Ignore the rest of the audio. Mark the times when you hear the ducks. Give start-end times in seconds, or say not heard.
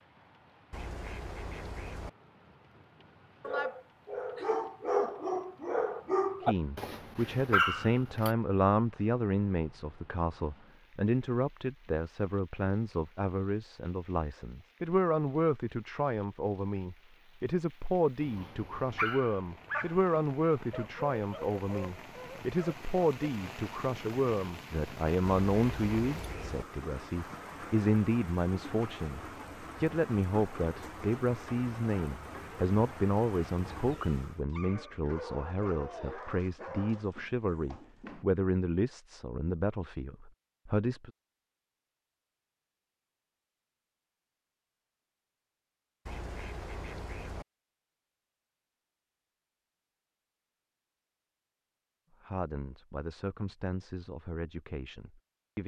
0.7-2.1, 25.2-26.6, 46.0-47.5.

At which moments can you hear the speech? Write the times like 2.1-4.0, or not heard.
6.4-41.1, 52.2-55.6.